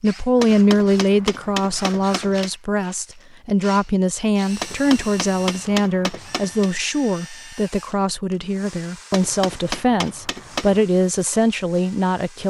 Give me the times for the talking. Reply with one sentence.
The talking can be heard from 0.0 to 12.4 s.